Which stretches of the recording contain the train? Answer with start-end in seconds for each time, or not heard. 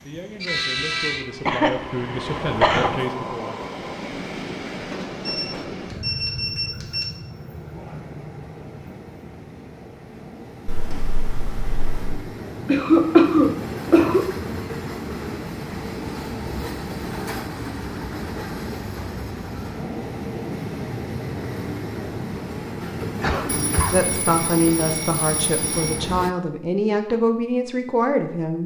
0.0-26.4.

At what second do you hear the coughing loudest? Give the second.
13 s.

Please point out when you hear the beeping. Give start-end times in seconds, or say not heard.
5.2-7.0, 10.7-12.2, 23.4-26.0.